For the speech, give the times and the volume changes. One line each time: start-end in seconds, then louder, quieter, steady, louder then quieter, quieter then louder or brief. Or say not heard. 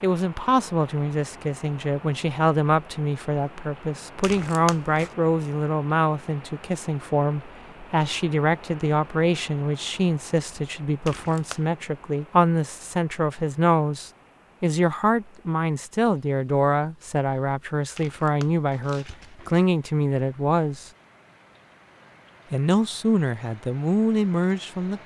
0.0-20.9 steady
22.5-25.0 brief.